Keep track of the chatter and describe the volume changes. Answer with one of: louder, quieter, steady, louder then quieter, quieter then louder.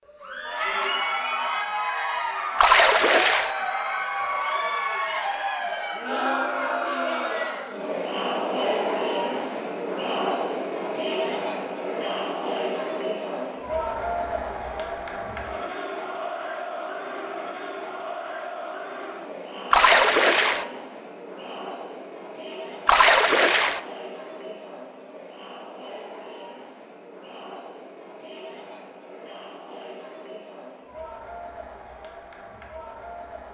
quieter.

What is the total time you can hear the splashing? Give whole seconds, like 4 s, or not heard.
3 s.